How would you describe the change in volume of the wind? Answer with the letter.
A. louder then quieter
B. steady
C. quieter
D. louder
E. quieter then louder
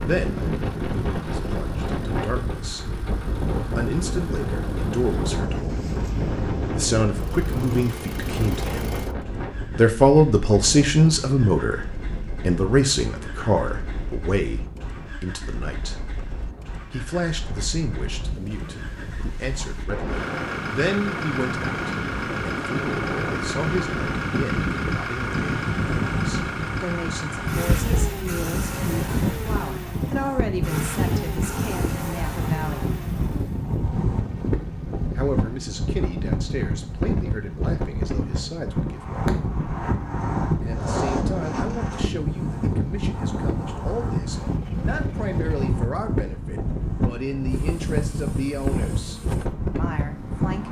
E.